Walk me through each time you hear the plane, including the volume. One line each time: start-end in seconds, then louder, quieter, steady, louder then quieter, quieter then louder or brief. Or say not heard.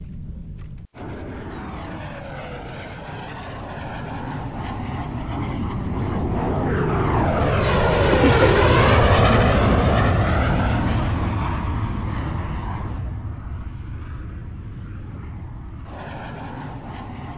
0.0-17.3 louder then quieter.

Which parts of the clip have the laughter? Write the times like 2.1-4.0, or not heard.
8.1-8.7.